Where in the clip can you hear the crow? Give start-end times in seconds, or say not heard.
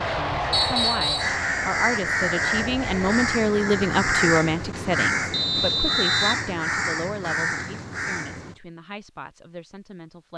1.1-8.6.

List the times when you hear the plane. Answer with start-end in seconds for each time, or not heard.
0.0-3.4.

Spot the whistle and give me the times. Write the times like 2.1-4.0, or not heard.
0.5-1.4, 5.3-6.4.